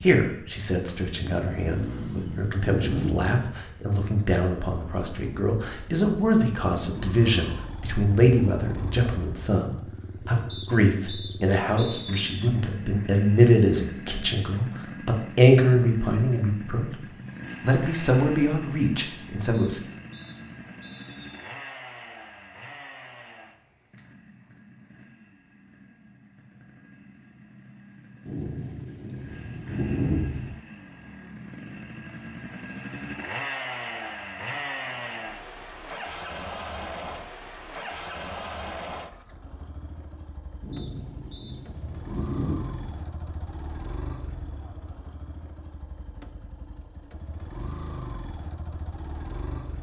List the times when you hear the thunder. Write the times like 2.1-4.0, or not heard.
1.1-3.3, 28.2-30.6, 40.6-43.0.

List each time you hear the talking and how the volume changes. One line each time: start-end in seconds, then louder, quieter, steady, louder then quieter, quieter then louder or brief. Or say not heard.
0.0-16.9 louder
17.6-19.8 brief.